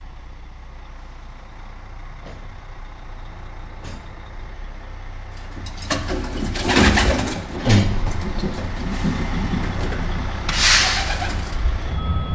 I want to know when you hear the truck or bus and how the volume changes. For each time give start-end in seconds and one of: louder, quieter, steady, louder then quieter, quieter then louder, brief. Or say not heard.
0.0-12.2 louder.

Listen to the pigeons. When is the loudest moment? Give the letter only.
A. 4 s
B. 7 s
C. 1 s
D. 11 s
B.